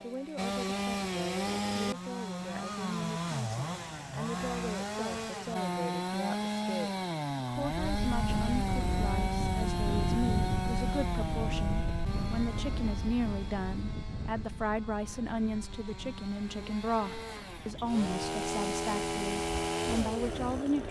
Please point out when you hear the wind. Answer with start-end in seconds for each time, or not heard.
7.5-20.8.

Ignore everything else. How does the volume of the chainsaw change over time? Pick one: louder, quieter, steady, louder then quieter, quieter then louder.
quieter then louder.